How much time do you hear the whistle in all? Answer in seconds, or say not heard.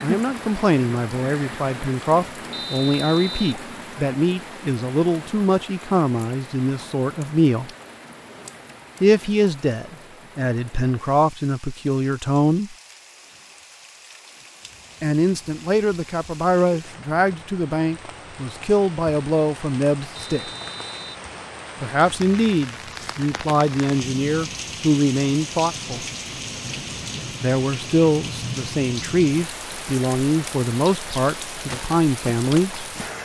2 s.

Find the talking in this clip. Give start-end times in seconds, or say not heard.
0.0-7.7, 9.0-12.8, 15.0-20.4, 21.8-26.1, 27.4-32.8.